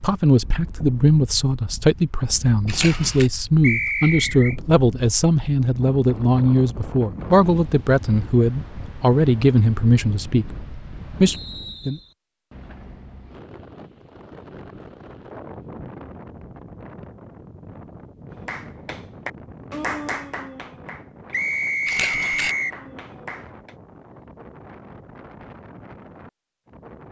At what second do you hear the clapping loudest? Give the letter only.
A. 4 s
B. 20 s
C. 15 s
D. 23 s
B.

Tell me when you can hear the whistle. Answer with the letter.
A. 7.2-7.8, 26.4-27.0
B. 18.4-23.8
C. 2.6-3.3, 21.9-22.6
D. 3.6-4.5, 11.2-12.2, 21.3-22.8
D.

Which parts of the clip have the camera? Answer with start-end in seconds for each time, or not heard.
2.6-3.3, 21.9-22.6.